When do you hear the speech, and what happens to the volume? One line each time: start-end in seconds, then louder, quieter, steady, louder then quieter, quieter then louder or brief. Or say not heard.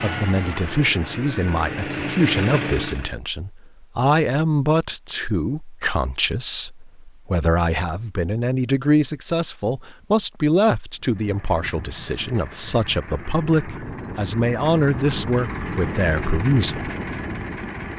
0.0-16.9 steady.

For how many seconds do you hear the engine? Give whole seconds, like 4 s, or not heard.
10 s.